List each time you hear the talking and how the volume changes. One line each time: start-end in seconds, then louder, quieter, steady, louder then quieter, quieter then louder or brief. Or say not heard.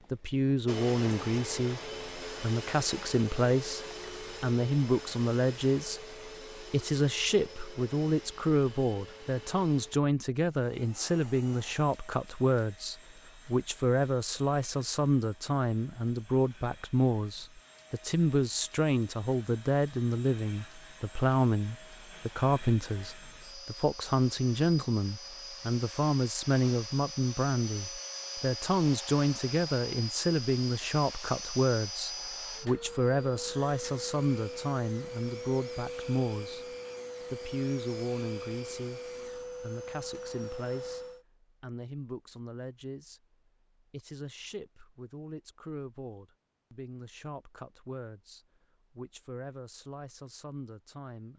0.1-51.3 quieter.